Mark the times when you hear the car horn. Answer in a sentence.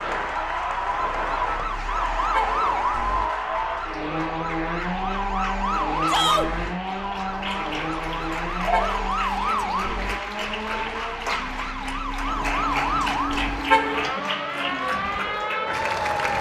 You can hear the car horn from 0.9 to 2.8 s, from 7.2 to 9.2 s and from 12.2 to 14.2 s.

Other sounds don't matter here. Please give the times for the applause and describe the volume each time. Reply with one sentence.
You can hear the applause from 0.0 to 16.3 s, getting louder.